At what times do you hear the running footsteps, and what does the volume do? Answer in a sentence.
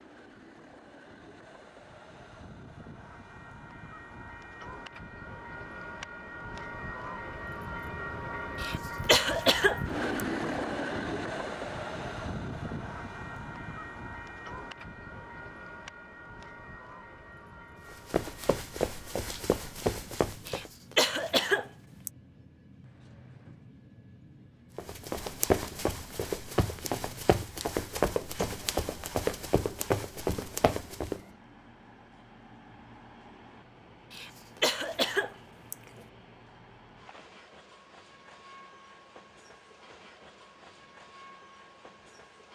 You can hear the running footsteps briefly from 17.9 to 20.7 s; and from 24.8 to 31.2 s, at a steady volume.